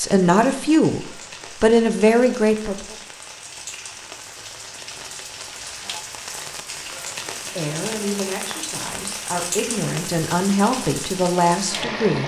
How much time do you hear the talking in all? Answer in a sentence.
The talking can be heard for 8 seconds in total.